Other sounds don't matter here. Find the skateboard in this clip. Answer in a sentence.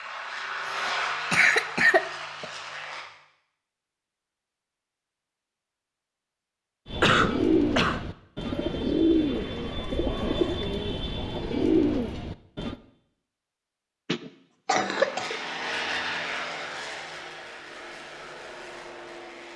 The skateboard can't be heard in this clip.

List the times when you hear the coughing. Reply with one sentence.
You can hear the coughing from 0.7 to 2.5 s, from 7.0 to 8.0 s and from 14.1 to 15.4 s.